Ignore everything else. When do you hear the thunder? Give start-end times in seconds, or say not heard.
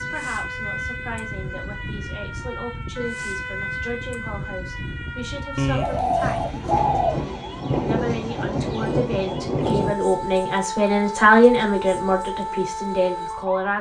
6.6-9.9.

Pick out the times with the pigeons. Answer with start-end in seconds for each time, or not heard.
5.5-7.2.